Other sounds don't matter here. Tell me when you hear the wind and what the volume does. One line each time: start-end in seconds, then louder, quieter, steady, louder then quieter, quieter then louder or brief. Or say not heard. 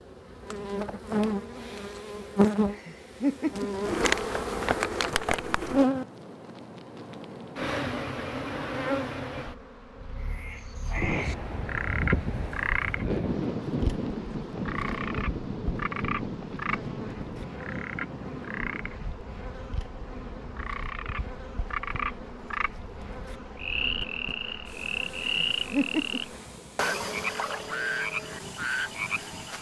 10.9-29.5 quieter.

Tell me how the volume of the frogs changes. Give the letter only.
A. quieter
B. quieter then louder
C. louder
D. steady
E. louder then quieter
B.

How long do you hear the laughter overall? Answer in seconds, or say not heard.
2 s.